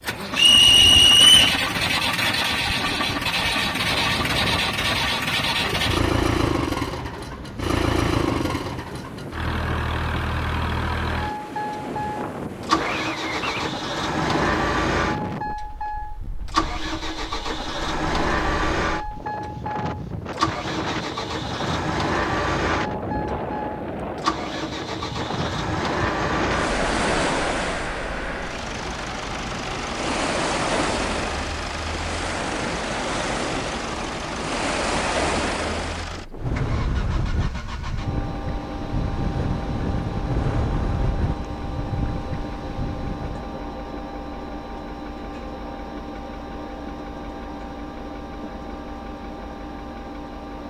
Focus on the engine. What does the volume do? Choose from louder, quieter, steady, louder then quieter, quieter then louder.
quieter.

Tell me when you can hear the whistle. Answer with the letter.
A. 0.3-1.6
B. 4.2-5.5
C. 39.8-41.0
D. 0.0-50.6
A.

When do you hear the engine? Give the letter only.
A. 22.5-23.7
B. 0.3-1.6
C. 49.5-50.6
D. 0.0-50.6
D.